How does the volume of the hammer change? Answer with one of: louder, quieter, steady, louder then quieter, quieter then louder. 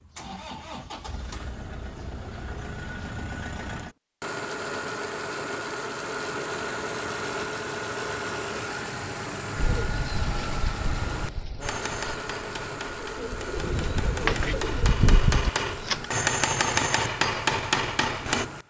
louder.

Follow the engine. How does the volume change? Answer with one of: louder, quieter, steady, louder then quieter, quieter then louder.
louder then quieter.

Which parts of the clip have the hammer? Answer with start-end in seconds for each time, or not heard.
11.6-18.5.